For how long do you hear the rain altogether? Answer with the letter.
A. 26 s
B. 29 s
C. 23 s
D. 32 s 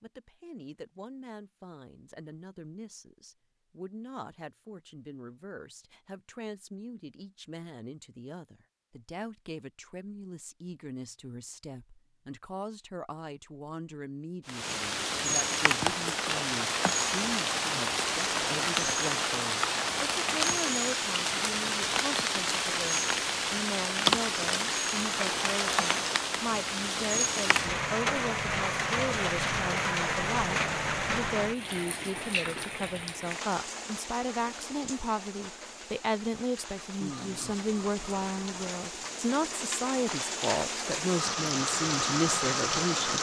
B.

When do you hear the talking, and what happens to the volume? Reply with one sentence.
The talking can be heard from 0.0 to 43.1 s, getting louder.